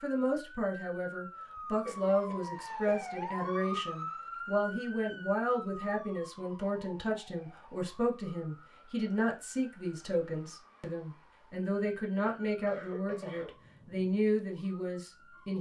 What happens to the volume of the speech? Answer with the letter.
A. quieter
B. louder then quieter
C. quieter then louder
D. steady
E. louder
D.